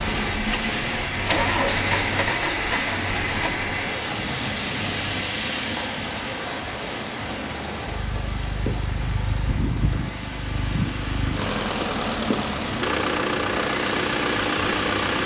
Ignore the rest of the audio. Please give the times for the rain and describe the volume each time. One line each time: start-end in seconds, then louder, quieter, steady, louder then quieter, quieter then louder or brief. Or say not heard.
0.0-15.2 quieter then louder.